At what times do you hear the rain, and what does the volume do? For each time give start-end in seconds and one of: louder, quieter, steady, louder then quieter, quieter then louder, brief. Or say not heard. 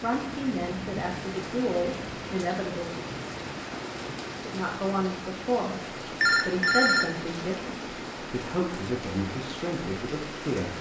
0.0-10.7 steady.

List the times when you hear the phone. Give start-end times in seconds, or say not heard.
6.2-7.1.